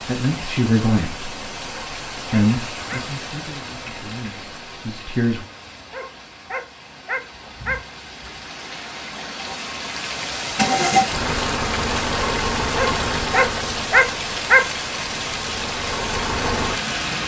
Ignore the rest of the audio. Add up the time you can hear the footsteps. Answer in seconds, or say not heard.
not heard.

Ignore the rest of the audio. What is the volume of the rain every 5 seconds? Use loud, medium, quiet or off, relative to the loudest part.
medium, medium, loud, loud.